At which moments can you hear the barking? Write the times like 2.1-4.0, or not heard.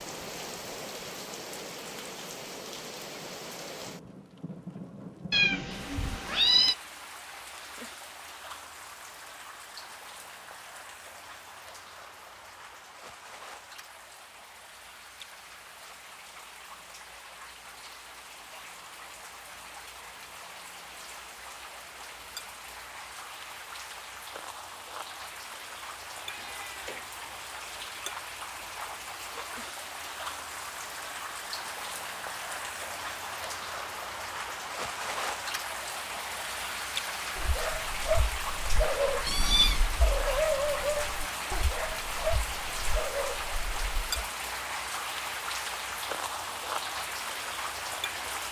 37.4-44.2.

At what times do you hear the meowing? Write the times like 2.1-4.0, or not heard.
5.3-6.8, 26.1-27.2, 39.2-39.9.